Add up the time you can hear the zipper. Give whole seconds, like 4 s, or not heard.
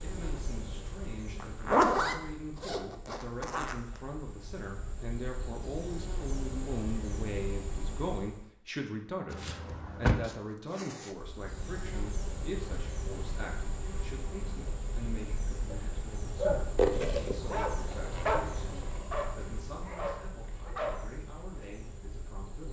5 s.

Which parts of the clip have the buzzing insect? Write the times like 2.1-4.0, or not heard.
0.0-8.4, 11.1-22.6.